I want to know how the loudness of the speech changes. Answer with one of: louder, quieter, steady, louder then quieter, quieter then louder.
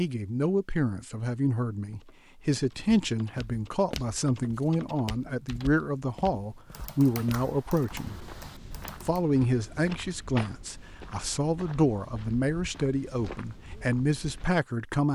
steady.